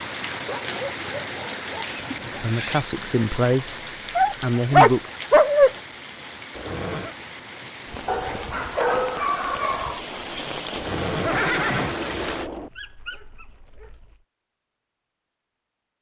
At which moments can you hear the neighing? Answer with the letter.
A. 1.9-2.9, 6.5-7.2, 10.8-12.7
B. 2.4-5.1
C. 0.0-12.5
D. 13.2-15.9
A.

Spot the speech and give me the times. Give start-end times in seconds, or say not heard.
2.4-5.1.